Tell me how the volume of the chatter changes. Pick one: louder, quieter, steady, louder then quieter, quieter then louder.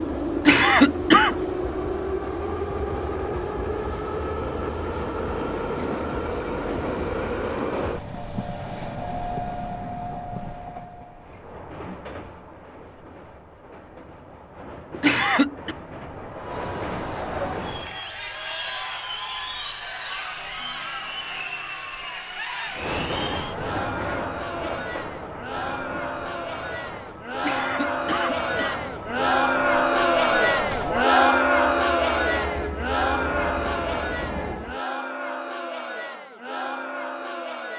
louder then quieter.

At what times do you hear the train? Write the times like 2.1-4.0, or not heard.
0.0-18.0, 22.7-34.8.